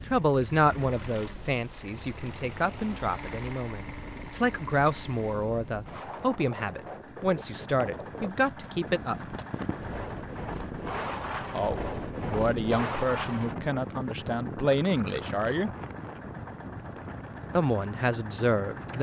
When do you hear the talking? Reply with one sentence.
You can hear the talking from 0.1 to 9.3 s, from 11.5 to 15.7 s and from 17.6 to 18.9 s.